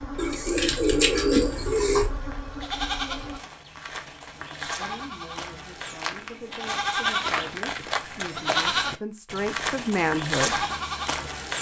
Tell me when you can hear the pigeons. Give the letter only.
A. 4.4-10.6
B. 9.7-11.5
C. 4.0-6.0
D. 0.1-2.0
D.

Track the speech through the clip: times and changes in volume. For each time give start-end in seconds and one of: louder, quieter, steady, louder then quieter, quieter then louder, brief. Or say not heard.
4.4-10.6 louder.